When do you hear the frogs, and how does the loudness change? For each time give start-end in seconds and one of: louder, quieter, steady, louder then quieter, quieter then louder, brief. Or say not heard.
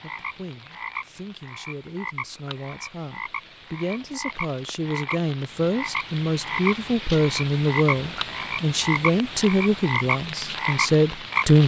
0.0-11.6 louder.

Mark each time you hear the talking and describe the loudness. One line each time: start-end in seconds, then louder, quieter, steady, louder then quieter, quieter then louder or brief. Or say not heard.
0.0-11.6 louder.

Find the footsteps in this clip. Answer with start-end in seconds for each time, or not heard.
not heard.